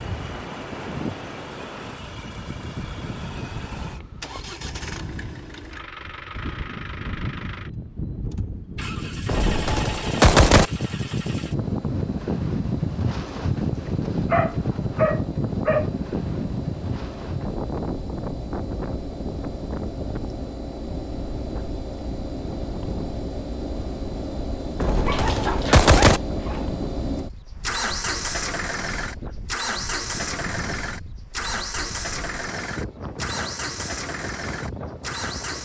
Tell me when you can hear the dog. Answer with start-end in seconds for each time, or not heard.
14.3-15.9, 25.1-26.8.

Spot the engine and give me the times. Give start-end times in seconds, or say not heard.
0.0-35.6.